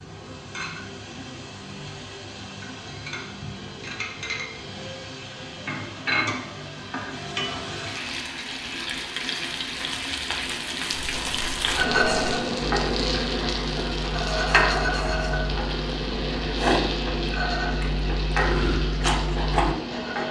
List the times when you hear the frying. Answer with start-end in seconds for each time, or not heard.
0.0-20.2.